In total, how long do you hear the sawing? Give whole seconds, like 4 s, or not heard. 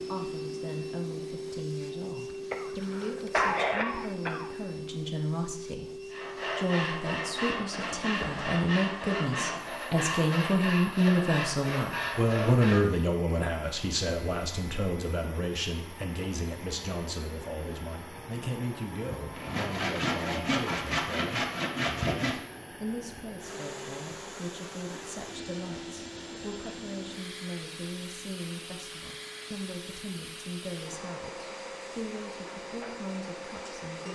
10 s.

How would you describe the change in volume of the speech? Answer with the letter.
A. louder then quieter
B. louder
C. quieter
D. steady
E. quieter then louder
A.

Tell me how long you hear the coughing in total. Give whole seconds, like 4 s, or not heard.
2 s.